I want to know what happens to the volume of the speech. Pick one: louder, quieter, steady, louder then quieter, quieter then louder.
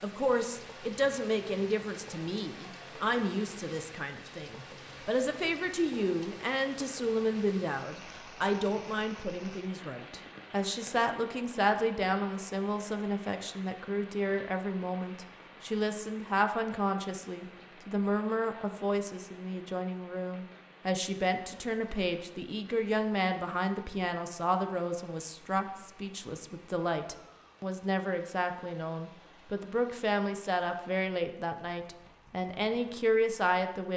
steady.